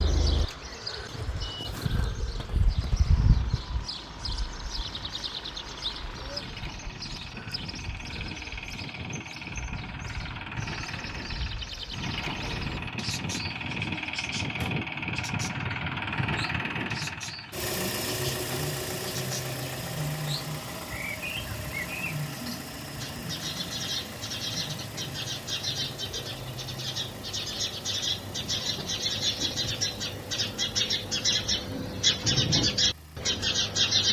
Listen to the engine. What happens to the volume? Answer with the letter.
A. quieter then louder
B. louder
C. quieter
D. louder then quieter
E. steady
D.